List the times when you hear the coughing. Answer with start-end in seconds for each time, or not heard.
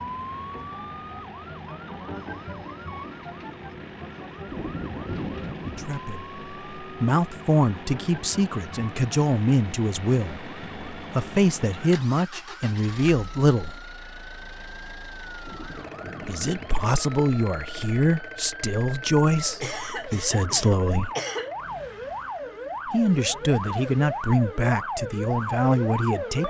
19.6-21.6.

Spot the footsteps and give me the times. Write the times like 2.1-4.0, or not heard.
not heard.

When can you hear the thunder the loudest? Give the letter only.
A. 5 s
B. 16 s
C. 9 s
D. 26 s
A.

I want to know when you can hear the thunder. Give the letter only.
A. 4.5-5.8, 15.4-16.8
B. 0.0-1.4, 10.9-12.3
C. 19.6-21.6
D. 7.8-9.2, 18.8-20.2
A.